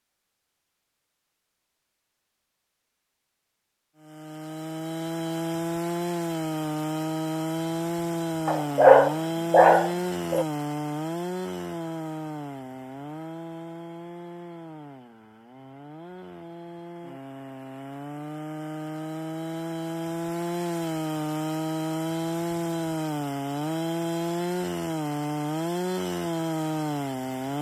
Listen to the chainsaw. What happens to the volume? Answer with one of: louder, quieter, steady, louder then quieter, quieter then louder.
quieter then louder.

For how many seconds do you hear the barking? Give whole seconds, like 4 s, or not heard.
2 s.